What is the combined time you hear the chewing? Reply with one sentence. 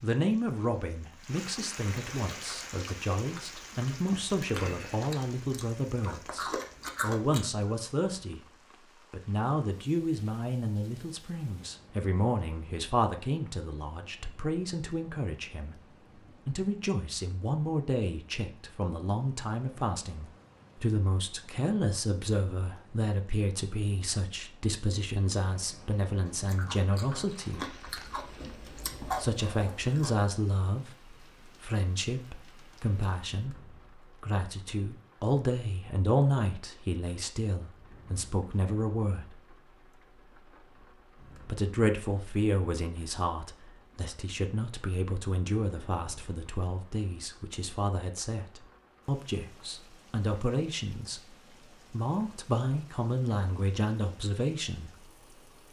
You can hear the chewing for 9 seconds altogether.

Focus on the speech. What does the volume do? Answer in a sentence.
The volume of the speech stays about the same.